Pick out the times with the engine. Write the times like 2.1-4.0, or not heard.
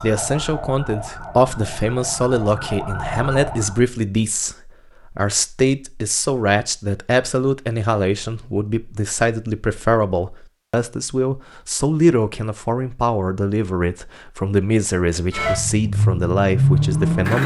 15.3-17.4.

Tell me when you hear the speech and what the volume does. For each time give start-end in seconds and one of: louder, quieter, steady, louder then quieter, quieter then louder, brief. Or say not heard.
0.0-17.4 steady.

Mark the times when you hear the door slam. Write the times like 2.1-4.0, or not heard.
not heard.